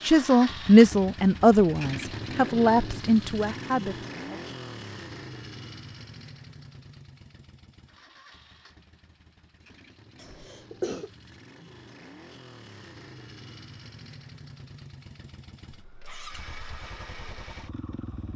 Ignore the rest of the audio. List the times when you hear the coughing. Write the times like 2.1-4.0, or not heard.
10.2-11.1.